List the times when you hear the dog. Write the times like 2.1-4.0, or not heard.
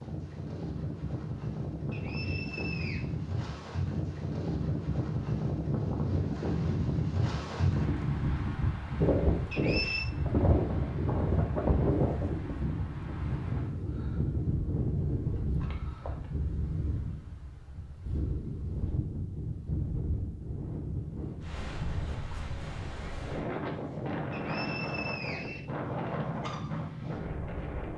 not heard.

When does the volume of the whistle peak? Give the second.
10 s.